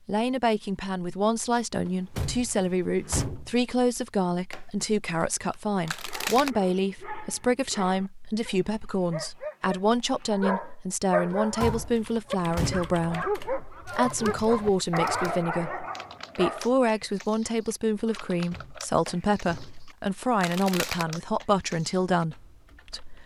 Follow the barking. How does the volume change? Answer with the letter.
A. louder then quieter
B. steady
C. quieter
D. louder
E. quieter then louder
D.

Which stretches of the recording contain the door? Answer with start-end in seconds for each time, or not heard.
1.9-3.5, 11.3-13.0, 18.2-19.9.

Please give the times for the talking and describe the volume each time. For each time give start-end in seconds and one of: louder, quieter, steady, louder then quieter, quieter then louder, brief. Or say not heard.
0.1-23.2 steady.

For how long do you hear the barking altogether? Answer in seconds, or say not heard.
11 s.